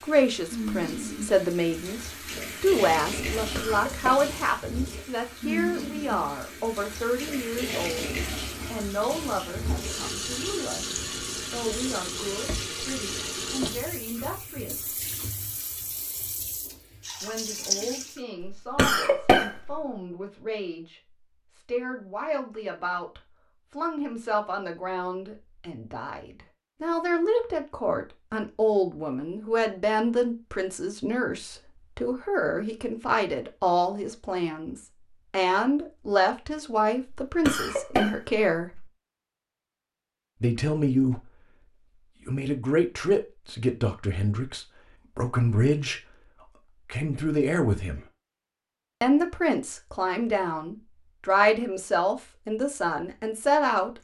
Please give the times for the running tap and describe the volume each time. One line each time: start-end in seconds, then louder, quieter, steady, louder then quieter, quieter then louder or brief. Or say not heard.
0.0-18.2 steady.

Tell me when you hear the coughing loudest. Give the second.
19 s.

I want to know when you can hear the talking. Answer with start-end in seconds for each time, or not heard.
0.0-14.9, 17.2-38.8, 40.4-41.2, 42.2-46.0, 46.8-48.0, 49.0-54.0.